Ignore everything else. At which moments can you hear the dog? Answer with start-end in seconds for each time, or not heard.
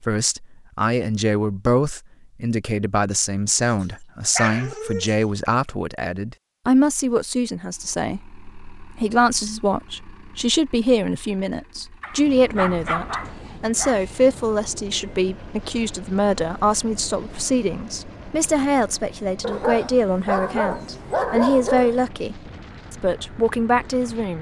4.2-5.2, 12.0-13.9, 19.4-22.0.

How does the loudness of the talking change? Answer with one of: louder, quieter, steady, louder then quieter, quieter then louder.
steady.